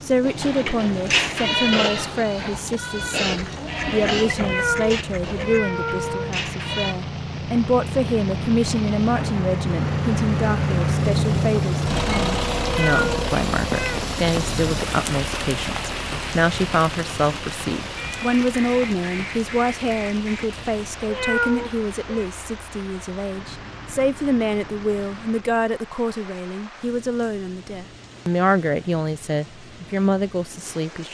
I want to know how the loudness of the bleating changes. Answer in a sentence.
The volume of the bleating goes down.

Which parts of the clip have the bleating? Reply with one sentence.
The bleating can be heard from 0.2 to 7.0 s.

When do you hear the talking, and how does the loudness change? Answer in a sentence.
You can hear the talking from 0.0 to 31.0 s, at a steady volume.